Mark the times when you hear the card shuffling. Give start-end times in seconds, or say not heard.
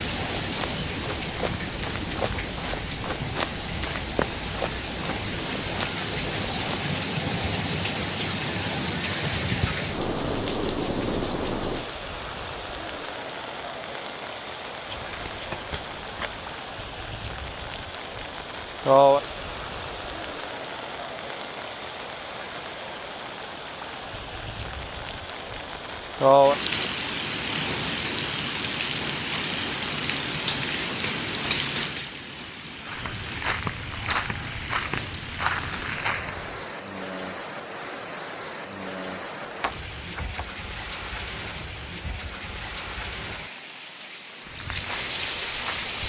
14.8-16.6, 39.4-40.5.